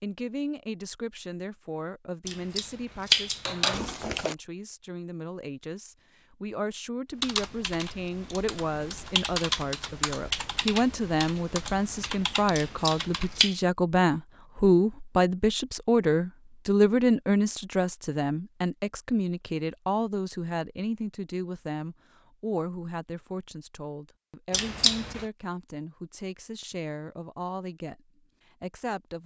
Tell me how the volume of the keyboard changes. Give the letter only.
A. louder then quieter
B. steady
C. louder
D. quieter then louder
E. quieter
A.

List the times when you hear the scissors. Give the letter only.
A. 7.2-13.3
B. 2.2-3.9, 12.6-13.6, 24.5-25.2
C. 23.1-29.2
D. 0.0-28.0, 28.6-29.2
B.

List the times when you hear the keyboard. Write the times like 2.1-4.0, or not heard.
7.2-13.3.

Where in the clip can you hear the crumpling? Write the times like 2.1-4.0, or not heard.
3.7-4.3.